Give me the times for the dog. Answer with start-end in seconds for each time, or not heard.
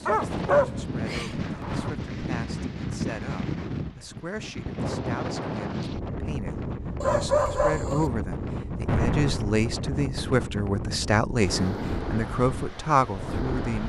0.1-1.9, 7.0-8.1.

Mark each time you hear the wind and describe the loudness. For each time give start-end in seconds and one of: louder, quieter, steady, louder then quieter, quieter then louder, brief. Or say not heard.
0.0-13.8 steady.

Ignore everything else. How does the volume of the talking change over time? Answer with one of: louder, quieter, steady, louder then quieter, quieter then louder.
louder.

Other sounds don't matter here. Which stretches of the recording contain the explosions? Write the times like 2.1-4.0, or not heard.
8.8-9.7.